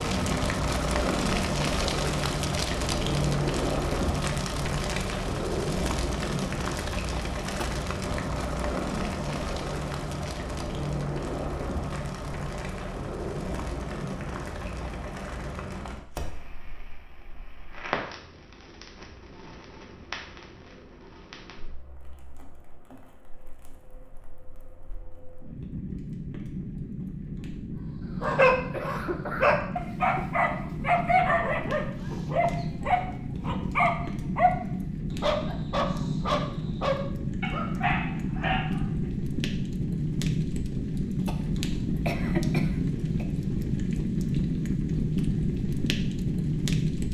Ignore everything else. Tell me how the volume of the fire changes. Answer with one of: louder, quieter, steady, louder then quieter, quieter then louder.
quieter then louder.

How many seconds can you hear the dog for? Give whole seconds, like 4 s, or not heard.
11 s.